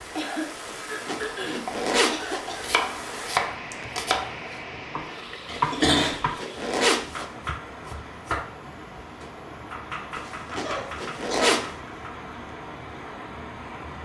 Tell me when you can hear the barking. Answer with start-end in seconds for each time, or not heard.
not heard.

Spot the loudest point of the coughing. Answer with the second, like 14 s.
6 s.